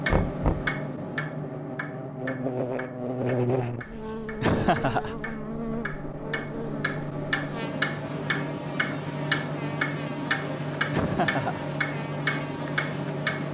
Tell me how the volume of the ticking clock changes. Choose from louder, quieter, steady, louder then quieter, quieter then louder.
quieter then louder.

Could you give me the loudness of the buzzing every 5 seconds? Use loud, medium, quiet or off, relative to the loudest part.
loud, medium, medium.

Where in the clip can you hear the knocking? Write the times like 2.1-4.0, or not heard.
0.1-0.8.